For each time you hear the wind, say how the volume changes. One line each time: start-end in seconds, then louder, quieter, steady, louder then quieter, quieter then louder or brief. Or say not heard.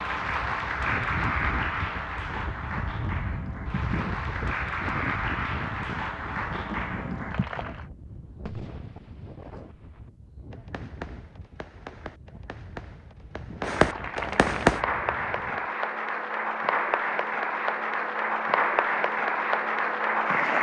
0.0-15.8 quieter.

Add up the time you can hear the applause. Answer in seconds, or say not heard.
15 s.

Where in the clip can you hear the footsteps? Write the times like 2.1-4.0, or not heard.
not heard.